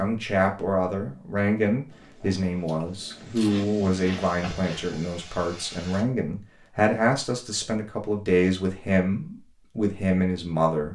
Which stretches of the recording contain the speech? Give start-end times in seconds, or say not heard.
0.0-10.9.